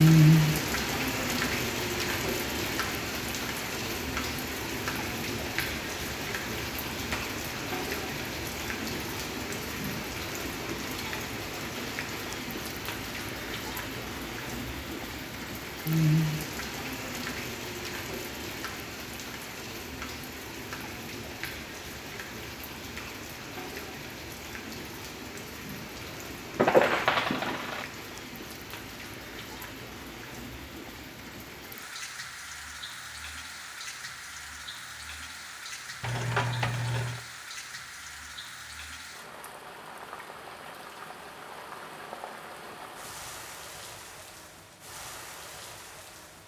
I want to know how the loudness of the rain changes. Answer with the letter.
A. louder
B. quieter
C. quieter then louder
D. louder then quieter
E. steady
B.